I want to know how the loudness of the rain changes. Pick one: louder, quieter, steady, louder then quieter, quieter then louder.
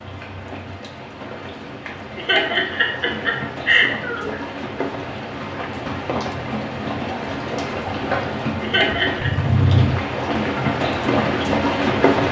louder.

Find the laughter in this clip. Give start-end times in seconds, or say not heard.
2.1-4.4, 8.6-9.3.